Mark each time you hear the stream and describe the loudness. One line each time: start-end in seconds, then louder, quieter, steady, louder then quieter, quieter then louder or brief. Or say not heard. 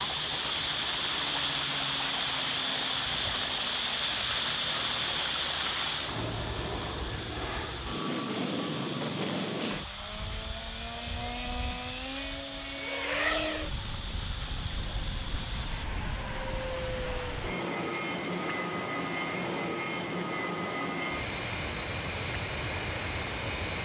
0.0-23.6 quieter.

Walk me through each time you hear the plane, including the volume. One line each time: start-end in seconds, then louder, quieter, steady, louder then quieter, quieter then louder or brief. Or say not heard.
0.0-23.7 louder.